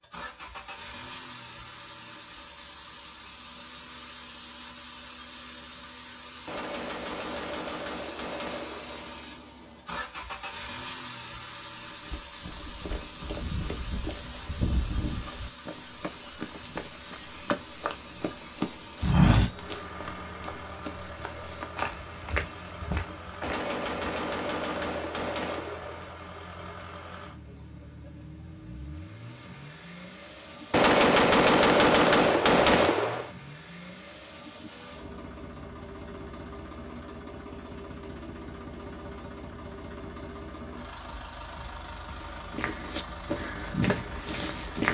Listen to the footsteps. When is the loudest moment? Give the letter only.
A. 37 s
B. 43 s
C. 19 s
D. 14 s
C.